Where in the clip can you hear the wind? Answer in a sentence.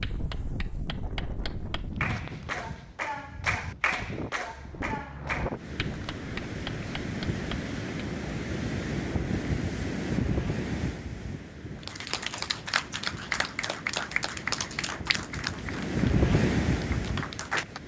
The wind can be heard from 0.0 to 17.8 s.